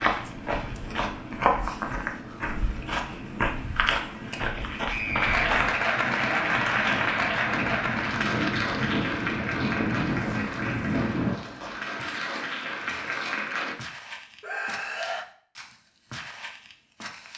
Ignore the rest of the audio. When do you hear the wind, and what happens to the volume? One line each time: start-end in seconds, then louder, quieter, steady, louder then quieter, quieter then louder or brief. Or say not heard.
0.0-11.4 louder.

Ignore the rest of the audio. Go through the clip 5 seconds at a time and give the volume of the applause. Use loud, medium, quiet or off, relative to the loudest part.
off, loud, medium, off.